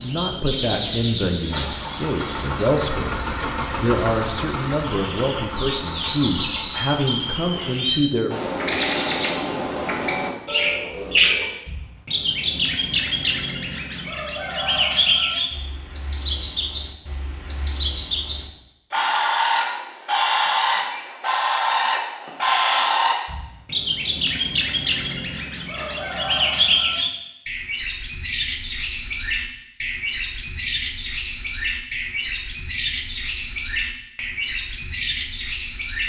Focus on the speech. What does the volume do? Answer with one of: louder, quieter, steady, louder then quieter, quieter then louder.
steady.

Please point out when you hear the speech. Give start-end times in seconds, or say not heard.
0.0-3.1, 3.8-8.3.